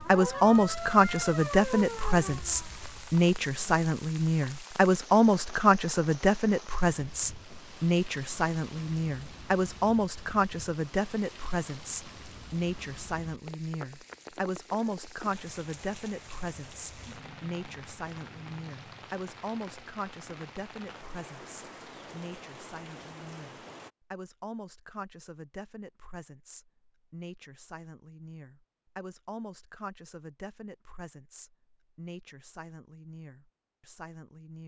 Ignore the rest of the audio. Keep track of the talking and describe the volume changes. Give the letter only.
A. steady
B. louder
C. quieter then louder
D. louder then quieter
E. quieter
E.